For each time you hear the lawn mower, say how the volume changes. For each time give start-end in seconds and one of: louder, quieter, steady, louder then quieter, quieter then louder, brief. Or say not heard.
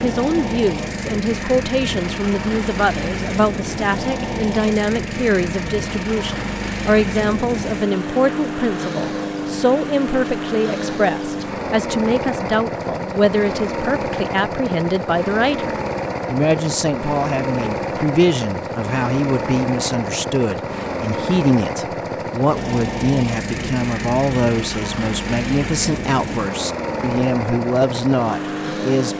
0.0-29.1 steady.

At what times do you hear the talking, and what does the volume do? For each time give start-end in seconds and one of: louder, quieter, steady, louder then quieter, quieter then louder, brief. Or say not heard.
0.0-29.1 steady.